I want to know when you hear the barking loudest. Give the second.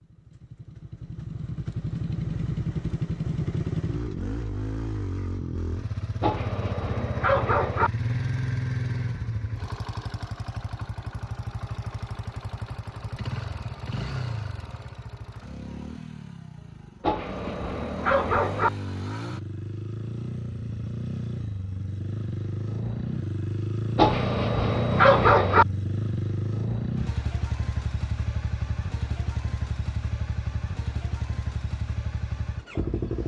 25 s.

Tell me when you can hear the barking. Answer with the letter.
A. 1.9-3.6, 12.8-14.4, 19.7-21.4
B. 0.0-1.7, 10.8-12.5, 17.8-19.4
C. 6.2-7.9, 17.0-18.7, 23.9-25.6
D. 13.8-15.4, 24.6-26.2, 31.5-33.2
C.